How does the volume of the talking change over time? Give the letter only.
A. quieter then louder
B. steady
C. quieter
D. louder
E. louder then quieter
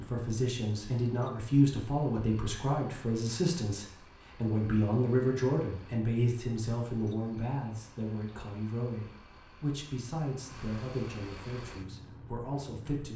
C.